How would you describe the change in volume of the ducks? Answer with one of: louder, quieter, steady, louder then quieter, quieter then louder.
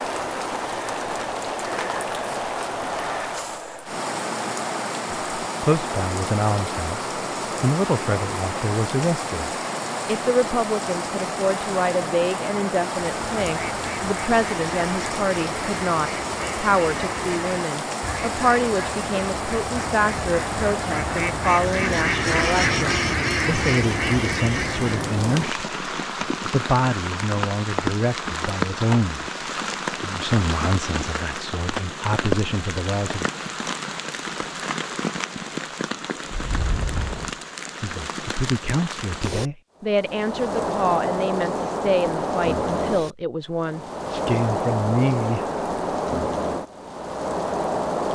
louder.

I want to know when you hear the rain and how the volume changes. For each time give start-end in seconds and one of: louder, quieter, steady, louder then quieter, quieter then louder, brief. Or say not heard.
0.0-48.0 steady.